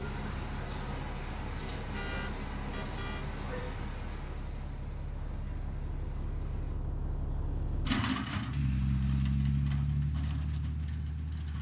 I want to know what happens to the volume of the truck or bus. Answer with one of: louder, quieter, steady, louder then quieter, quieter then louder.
louder.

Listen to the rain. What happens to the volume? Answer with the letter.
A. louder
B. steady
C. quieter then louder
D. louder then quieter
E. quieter
E.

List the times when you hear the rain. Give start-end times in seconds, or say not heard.
0.0-6.8.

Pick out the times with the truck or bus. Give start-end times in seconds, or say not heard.
0.0-11.5.